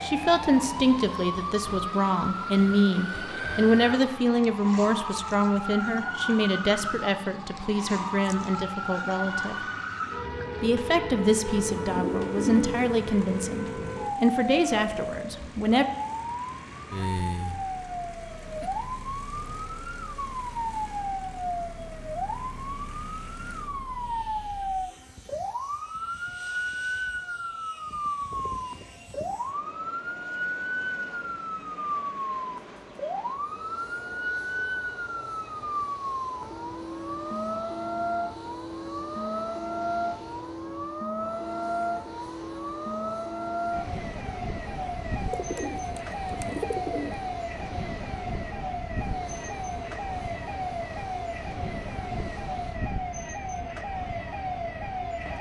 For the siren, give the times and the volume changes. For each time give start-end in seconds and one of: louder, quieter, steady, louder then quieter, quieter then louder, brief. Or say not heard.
0.0-55.3 steady.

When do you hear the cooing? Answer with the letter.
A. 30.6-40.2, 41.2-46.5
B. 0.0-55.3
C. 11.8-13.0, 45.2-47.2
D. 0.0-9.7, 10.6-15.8
C.